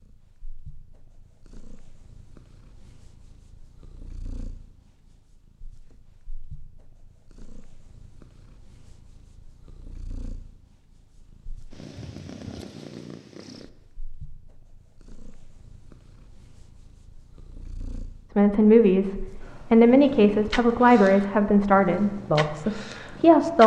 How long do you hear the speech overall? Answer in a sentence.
You can hear the speech for 5 seconds altogether.